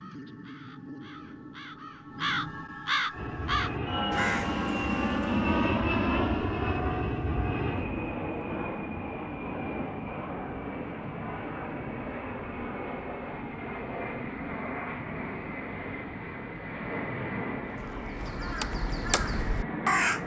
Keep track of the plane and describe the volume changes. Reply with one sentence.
The volume of the plane goes down.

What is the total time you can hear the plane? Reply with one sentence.
The plane can be heard for 17 seconds in total.